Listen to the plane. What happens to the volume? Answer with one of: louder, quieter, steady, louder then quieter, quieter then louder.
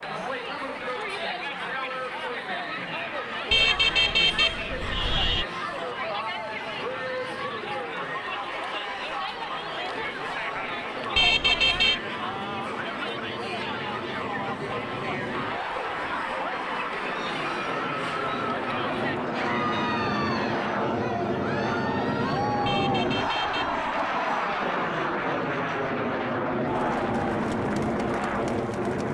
louder.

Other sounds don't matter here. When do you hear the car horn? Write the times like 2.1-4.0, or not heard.
3.5-5.5, 11.2-12.0, 22.6-23.8.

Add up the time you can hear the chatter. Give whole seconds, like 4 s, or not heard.
29 s.